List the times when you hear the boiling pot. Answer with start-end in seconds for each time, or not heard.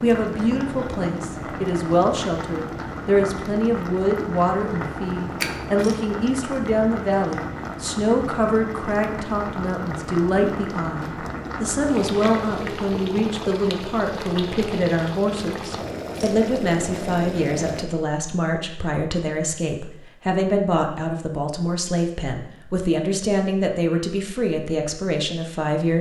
0.0-17.9.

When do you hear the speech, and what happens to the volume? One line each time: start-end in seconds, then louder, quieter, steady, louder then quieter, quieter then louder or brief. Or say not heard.
0.0-25.9 steady.